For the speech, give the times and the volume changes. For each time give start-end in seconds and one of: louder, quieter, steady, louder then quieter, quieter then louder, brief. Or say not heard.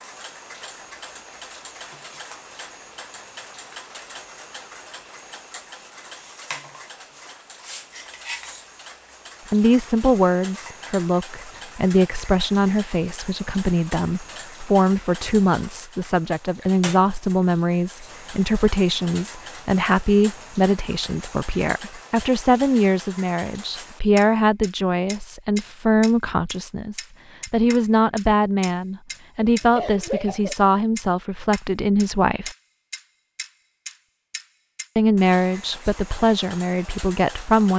9.5-32.5 steady
35.0-37.7 brief.